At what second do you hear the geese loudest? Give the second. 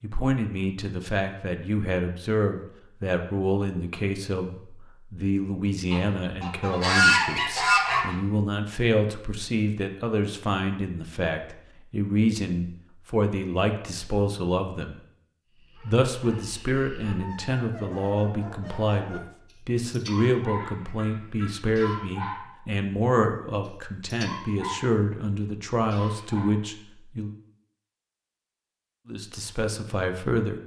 7 s.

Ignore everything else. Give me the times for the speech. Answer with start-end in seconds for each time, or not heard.
0.0-15.0, 15.8-27.3, 29.1-30.6.